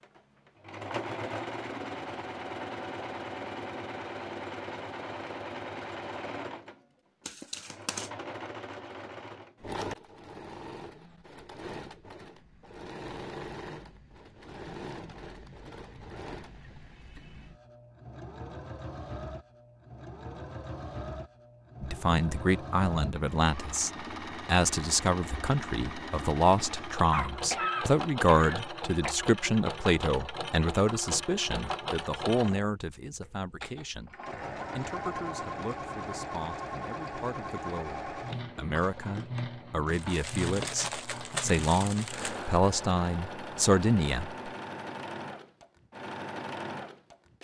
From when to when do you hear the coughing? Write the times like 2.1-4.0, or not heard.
7.2-8.1, 27.1-29.1, 38.2-39.0.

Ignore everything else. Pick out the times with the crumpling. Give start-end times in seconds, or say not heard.
39.9-42.5.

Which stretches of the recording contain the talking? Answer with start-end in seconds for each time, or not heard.
21.8-34.1, 34.8-44.3.